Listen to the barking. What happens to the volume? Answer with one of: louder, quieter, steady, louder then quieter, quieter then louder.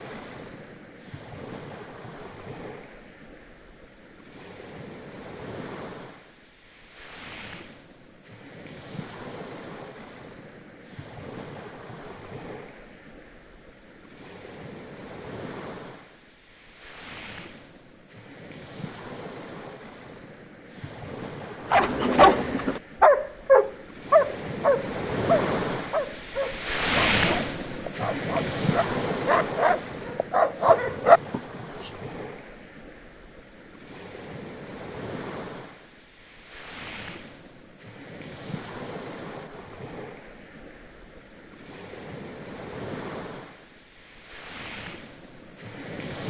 quieter then louder.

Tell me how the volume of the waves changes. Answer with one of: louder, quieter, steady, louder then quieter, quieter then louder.
louder then quieter.